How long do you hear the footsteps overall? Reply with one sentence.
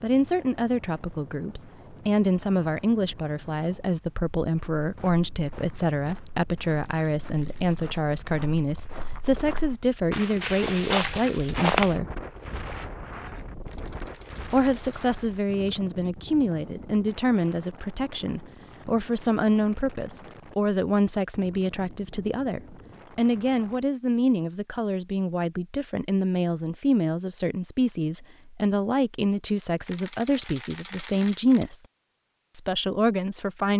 The footsteps can be heard for 7 seconds in total.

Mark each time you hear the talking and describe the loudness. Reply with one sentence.
You can hear the talking from 0.0 to 12.1 s, at a steady volume; from 14.5 to 31.8 s, at a steady volume; and briefly from 32.5 to 33.7 s.